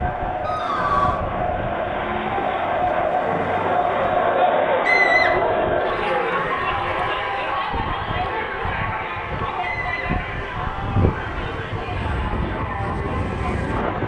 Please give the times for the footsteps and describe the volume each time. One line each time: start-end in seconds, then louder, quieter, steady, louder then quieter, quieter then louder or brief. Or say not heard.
not heard.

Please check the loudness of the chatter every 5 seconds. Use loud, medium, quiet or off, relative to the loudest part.
loud, loud, medium.